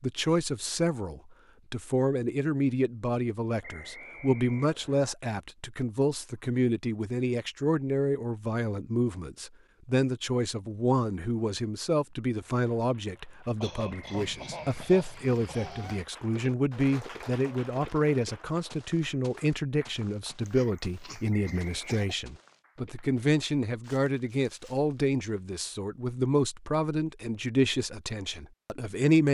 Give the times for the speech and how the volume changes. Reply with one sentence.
The speech can be heard from 0.0 to 29.3 s, at a steady volume.